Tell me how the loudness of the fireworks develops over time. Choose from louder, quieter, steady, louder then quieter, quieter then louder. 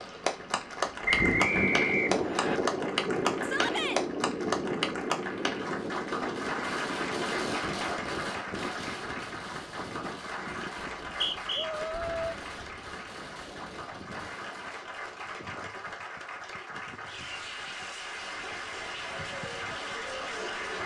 quieter.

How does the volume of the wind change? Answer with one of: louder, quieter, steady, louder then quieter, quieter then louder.
quieter.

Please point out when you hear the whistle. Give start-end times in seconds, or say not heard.
1.1-2.6, 11.1-11.7.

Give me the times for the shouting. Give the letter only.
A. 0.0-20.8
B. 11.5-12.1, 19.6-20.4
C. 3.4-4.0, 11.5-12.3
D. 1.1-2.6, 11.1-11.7
C.